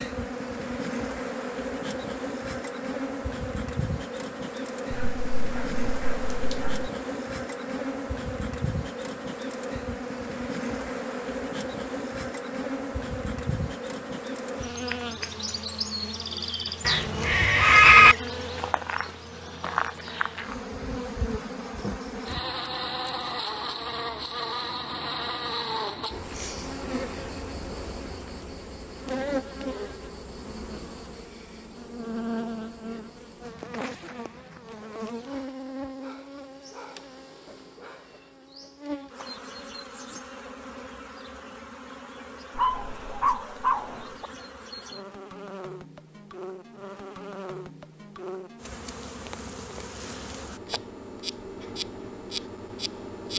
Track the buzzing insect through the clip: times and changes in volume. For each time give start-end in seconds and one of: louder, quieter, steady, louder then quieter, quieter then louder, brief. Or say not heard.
0.0-53.3 quieter.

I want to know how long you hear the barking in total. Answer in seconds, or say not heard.
4 s.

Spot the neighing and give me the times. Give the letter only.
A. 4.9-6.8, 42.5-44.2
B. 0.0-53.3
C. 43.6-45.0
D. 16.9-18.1
D.